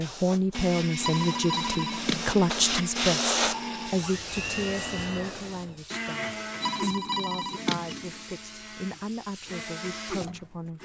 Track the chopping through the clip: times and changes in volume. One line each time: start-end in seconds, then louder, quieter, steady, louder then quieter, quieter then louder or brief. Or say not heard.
not heard.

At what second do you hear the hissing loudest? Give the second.
3 s.